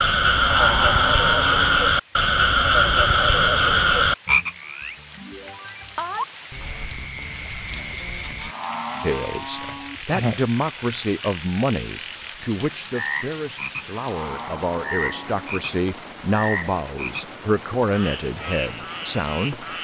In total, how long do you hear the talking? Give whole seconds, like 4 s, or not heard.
11 s.